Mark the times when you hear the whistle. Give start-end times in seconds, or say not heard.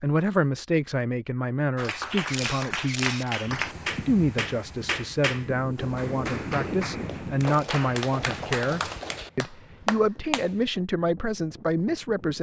not heard.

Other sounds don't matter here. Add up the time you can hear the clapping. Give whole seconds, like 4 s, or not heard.
9 s.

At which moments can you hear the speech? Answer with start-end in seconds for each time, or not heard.
0.0-12.3.